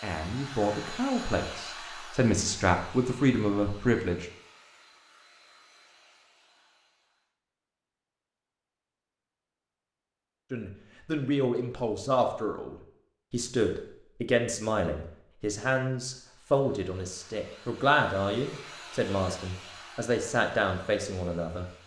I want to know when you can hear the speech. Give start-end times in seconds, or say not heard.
0.0-4.3, 10.5-21.6.